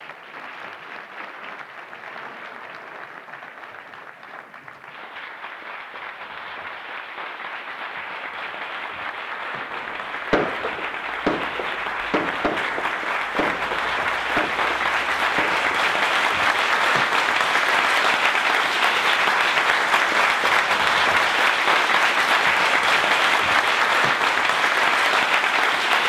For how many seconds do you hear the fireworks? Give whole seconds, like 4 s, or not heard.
6 s.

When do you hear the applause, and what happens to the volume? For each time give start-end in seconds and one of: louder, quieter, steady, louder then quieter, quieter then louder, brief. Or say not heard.
0.0-26.0 louder.